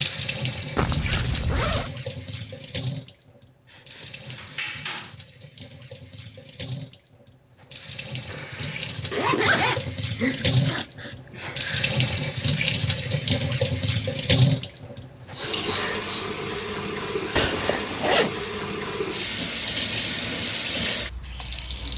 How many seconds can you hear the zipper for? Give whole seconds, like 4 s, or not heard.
4 s.